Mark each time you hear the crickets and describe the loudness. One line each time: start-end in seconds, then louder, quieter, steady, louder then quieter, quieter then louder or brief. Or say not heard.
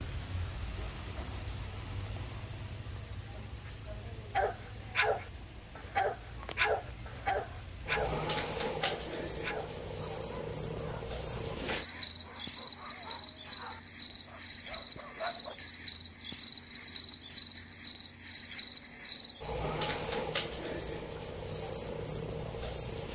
0.0-23.1 steady.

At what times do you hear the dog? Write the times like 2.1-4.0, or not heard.
4.3-15.6.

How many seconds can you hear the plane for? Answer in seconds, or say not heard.
not heard.